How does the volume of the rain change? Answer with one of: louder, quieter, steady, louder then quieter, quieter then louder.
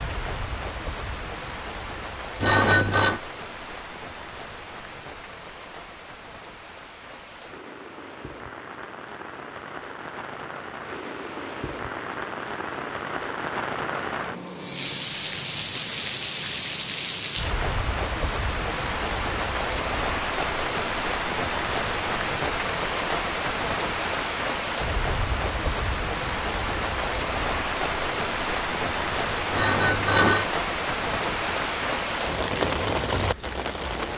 louder.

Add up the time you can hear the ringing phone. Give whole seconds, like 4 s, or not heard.
2 s.